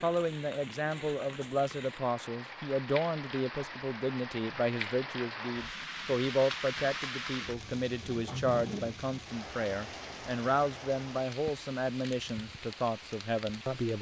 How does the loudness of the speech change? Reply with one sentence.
The volume of the speech stays about the same.